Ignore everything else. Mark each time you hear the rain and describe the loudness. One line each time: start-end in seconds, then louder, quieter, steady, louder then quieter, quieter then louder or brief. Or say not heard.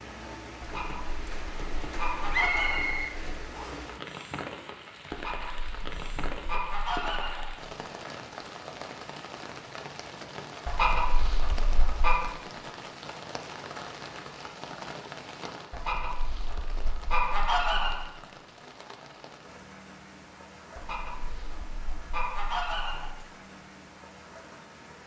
0.0-25.0 quieter.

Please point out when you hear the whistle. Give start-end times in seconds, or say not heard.
2.3-3.9.